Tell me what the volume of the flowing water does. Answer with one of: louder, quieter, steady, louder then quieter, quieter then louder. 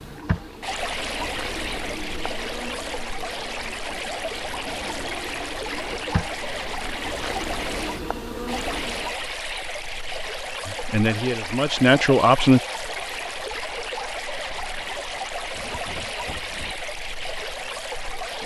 steady.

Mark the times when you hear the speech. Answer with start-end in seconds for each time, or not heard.
10.7-12.6.